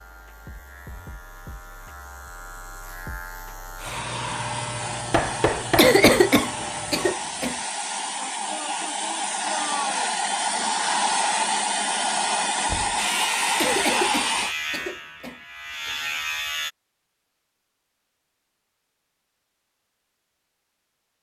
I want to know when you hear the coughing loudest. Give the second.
6 s.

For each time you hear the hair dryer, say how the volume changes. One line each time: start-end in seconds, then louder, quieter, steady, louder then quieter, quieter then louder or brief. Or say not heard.
3.8-14.6 louder.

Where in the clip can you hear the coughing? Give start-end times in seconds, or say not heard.
5.8-7.5, 13.6-15.3.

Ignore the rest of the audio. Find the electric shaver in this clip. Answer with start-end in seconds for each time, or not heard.
0.0-7.2, 12.9-16.7.